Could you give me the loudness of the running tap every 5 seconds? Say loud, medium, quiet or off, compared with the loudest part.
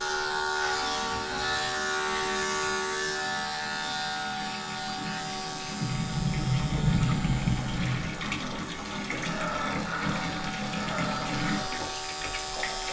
medium, loud, loud.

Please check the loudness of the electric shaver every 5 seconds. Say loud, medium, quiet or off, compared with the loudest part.
loud, medium, medium.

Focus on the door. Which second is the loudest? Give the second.
7 s.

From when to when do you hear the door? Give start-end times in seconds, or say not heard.
5.8-8.1.